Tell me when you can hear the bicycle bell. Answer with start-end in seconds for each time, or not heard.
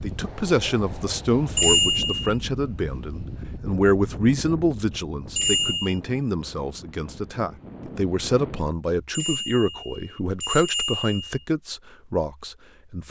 1.6-2.4, 5.3-6.0, 9.1-11.3.